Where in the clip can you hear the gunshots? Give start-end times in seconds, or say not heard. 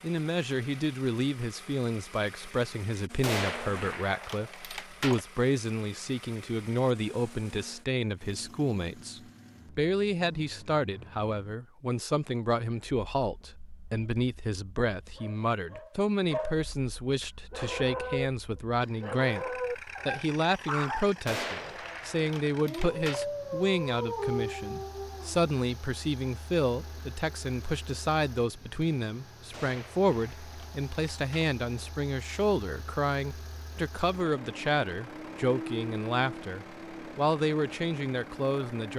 3.2-5.2, 21.2-23.2, 29.5-31.6.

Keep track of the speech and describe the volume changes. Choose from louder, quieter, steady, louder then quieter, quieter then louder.
steady.